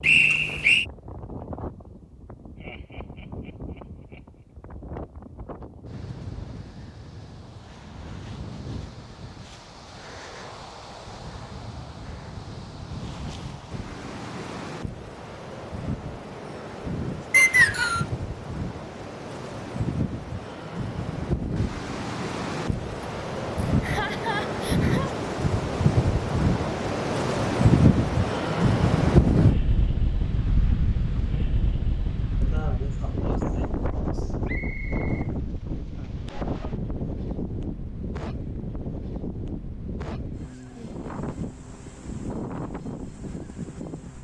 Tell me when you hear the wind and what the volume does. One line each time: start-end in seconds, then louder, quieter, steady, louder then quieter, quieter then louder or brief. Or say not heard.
0.0-44.1 louder then quieter.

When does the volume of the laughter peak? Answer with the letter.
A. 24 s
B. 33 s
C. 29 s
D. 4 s
A.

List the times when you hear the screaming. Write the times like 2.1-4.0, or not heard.
not heard.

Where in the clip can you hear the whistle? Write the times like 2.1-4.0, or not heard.
0.0-0.8, 17.3-18.1, 34.5-35.3.